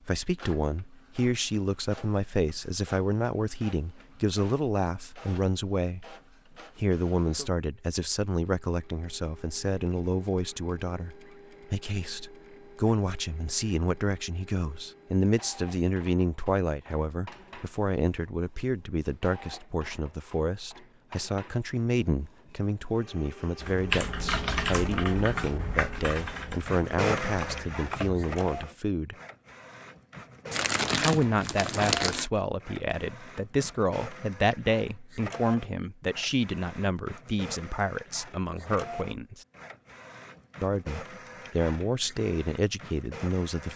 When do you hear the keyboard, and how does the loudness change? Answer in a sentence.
You can hear the keyboard from 23.6 to 28.6 s, getting quieter then louder.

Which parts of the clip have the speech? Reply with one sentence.
You can hear the speech from 0.1 to 6.2 s, from 6.8 to 29.1 s, from 31.0 to 39.5 s and from 40.6 to 43.7 s.